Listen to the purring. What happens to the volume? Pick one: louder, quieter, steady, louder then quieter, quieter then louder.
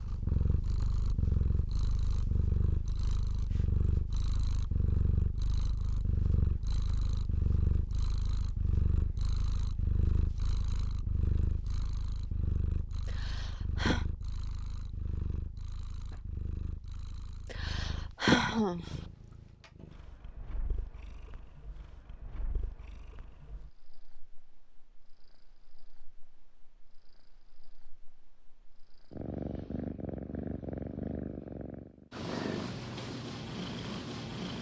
quieter then louder.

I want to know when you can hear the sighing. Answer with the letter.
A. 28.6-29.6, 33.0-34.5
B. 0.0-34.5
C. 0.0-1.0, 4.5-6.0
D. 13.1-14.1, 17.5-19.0
D.